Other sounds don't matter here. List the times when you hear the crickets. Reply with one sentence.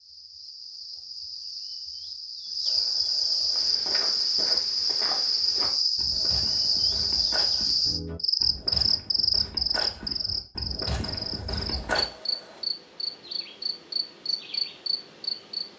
You can hear the crickets from 0.0 to 15.7 s.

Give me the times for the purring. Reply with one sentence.
The purring can't be heard in this clip.